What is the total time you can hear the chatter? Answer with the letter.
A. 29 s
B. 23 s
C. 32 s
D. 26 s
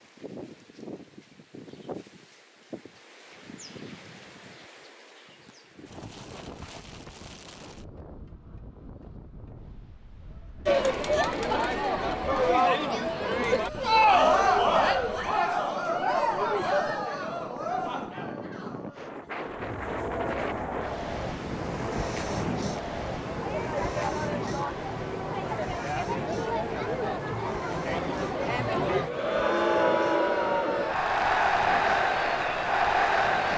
B.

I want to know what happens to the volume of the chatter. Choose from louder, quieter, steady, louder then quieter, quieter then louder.
quieter then louder.